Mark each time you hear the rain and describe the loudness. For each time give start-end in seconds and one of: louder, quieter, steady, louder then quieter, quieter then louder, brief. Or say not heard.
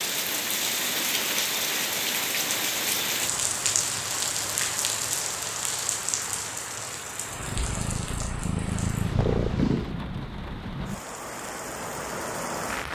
0.0-12.9 quieter.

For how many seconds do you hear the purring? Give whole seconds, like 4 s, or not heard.
3 s.